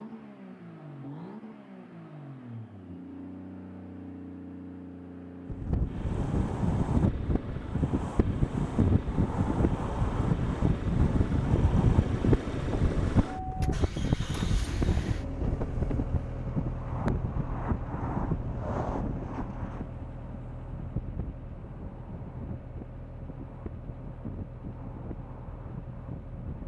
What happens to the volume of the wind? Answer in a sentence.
The volume of the wind goes down.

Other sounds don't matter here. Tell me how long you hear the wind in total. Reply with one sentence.
You can hear the wind for 21 seconds altogether.